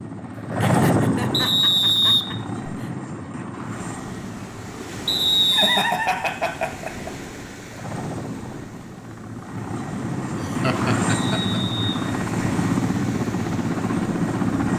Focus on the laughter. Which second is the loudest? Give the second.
6 s.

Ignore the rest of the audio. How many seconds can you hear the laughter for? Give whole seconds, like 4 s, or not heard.
5 s.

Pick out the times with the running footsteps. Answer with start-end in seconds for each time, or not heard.
not heard.